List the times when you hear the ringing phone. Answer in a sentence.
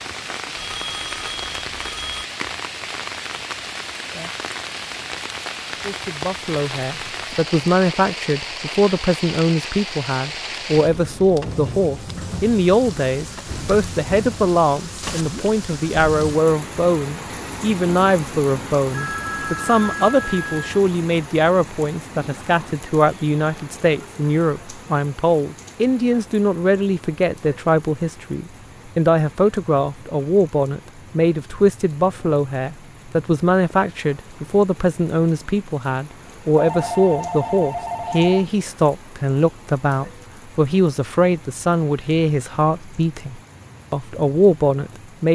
The ringing phone can be heard from 0.6 to 2.2 s, from 18.9 to 20.7 s and from 36.5 to 38.5 s.